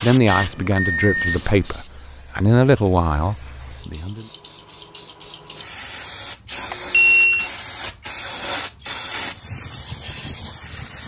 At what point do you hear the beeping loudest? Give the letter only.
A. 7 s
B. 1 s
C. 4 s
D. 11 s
A.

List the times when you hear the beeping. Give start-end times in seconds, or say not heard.
0.3-1.7, 6.7-7.5.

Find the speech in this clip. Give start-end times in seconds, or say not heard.
0.0-4.2.